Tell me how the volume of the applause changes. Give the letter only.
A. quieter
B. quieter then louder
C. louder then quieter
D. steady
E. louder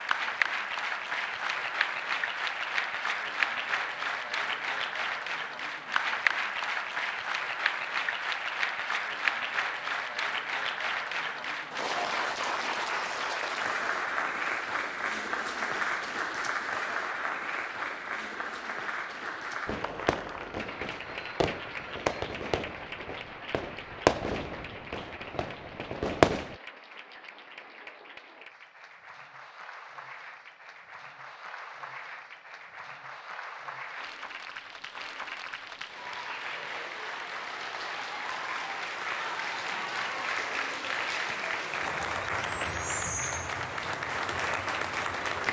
B.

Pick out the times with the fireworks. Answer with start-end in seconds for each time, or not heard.
19.6-26.6.